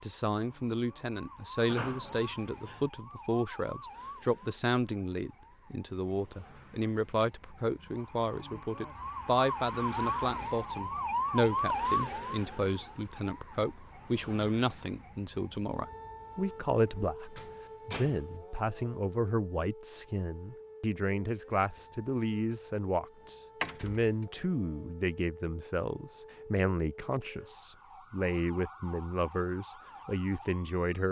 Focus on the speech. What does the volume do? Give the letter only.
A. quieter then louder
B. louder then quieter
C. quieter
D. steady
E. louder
D.